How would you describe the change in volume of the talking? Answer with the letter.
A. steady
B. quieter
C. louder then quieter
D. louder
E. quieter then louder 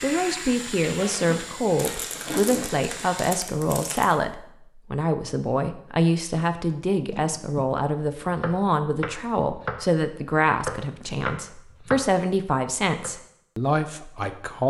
A.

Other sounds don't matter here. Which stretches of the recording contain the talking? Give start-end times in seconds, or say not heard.
0.0-14.6.